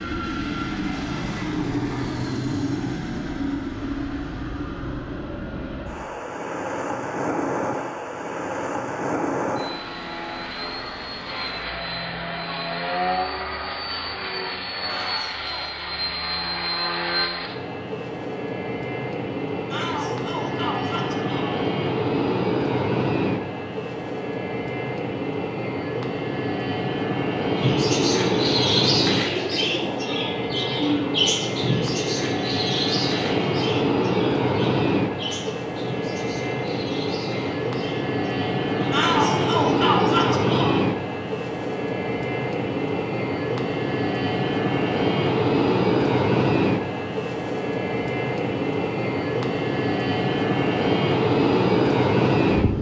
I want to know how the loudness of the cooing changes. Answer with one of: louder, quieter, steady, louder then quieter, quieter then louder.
quieter.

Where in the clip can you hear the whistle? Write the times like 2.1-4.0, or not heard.
not heard.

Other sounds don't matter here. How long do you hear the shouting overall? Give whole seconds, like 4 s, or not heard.
5 s.